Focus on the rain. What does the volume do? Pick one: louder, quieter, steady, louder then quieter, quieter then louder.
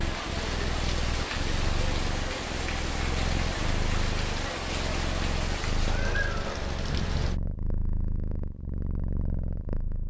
steady.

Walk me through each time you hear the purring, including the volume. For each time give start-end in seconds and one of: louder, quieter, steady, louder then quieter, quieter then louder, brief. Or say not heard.
0.0-10.0 steady.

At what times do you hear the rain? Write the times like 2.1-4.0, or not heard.
0.0-7.4.